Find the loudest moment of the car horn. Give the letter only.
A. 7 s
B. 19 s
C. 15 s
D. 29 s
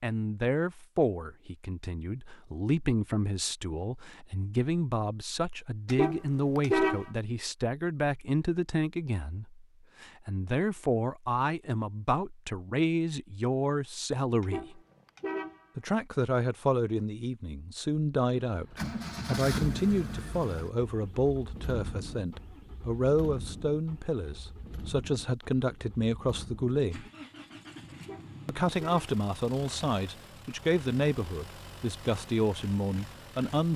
A.